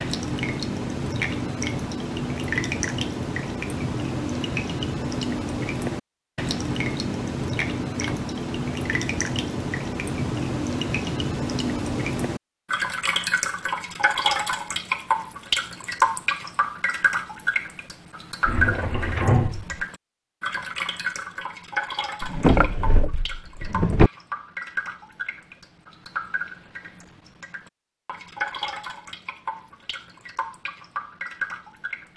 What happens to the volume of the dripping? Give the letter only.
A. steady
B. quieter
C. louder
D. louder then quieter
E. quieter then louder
B.